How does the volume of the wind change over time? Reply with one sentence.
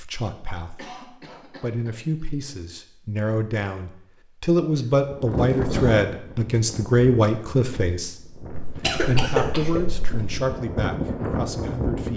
The volume of the wind goes down, then up.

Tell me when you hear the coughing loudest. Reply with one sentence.
The loudest moment of the coughing is at 9 seconds.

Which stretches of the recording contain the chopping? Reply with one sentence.
The chopping can't be heard in this clip.